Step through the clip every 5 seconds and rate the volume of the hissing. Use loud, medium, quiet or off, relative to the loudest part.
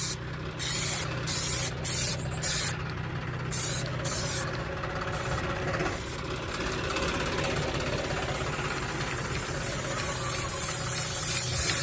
loud, medium, loud.